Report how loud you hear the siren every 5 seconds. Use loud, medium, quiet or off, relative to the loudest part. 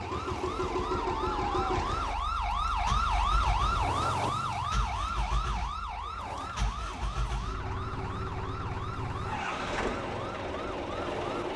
loud, medium, medium.